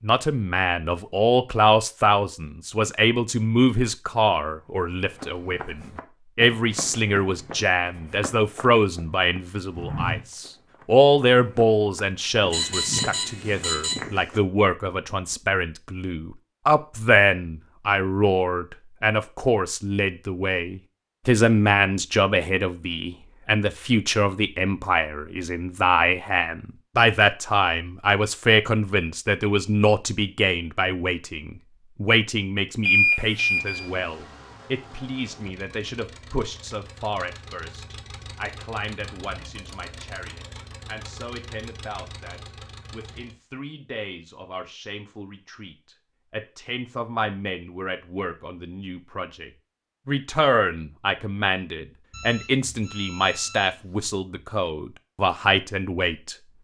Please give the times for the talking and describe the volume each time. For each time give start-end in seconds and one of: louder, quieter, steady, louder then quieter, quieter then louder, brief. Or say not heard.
0.0-56.4 quieter then louder.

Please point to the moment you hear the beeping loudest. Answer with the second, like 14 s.
33 s.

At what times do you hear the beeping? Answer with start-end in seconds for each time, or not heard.
12.5-13.9, 32.9-33.9, 52.1-54.1.